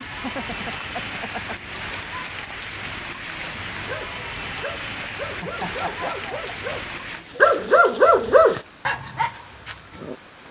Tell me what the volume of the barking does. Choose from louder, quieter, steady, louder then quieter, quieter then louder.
louder then quieter.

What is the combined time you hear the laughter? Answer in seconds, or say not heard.
3 s.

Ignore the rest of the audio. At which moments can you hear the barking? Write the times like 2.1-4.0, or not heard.
3.8-10.2.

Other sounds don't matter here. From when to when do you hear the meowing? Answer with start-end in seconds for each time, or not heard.
not heard.